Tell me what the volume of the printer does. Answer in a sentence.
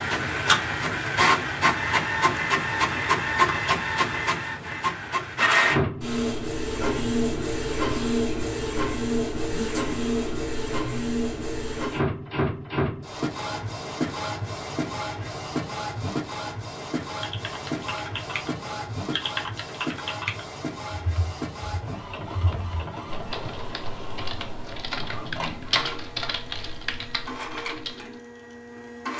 The loudness of the printer goes down.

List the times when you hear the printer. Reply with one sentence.
You can hear the printer from 0.0 to 29.1 s.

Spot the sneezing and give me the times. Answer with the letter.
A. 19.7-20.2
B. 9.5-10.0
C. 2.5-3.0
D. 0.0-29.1
B.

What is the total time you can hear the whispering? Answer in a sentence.
You can't hear the whispering here.